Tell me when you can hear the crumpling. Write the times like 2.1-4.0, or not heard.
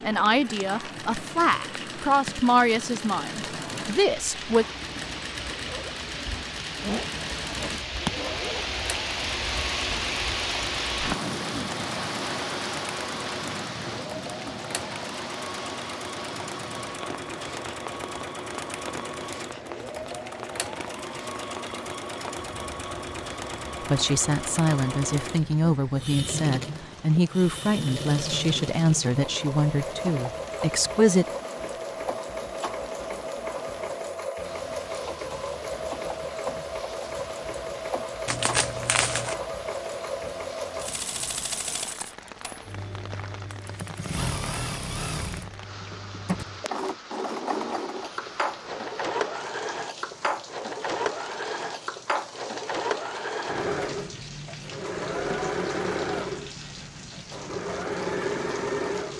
38.2-39.4.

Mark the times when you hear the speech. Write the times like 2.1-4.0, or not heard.
0.0-4.7, 23.8-31.2.